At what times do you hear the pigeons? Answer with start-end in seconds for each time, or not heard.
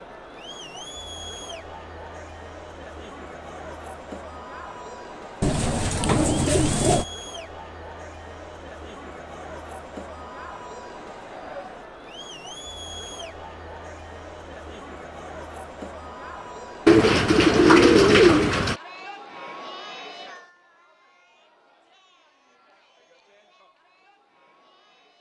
5.4-7.0, 16.9-18.8.